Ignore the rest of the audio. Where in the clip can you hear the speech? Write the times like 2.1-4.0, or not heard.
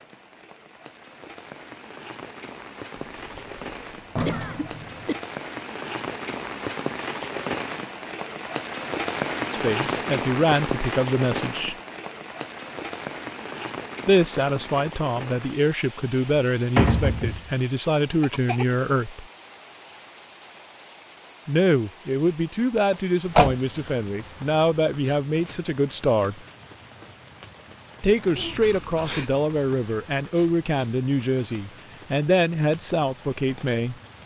9.5-11.8, 14.1-19.2, 21.4-26.4, 28.0-34.0.